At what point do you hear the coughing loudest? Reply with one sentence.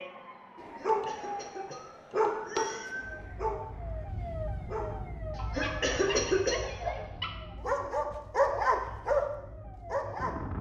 The loudest moment of the coughing is at 6 seconds.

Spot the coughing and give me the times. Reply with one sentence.
You can hear the coughing from 0.8 to 2.9 s and from 5.3 to 6.7 s.